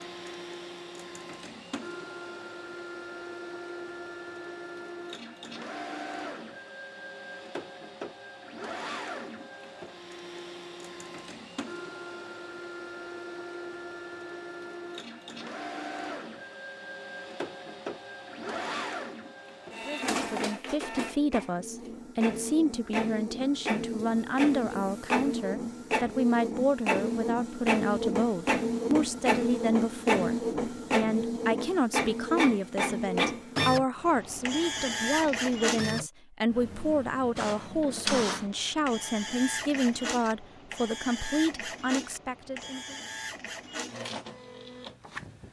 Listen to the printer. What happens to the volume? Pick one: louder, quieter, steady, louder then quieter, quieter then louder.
louder then quieter.